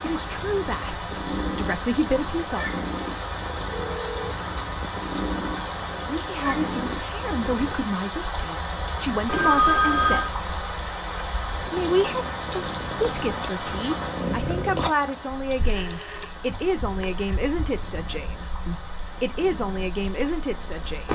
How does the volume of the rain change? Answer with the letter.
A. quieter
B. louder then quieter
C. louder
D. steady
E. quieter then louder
A.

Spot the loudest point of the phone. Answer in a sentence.
The volume of the phone peaks at 10 seconds.